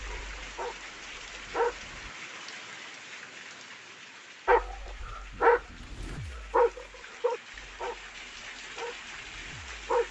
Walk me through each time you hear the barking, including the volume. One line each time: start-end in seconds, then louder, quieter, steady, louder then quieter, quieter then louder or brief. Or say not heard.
0.0-2.1 brief
4.5-10.0 quieter.